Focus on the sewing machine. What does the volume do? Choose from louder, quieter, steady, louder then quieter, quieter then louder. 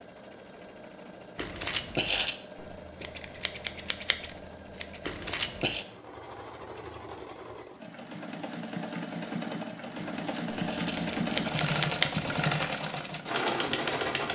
louder.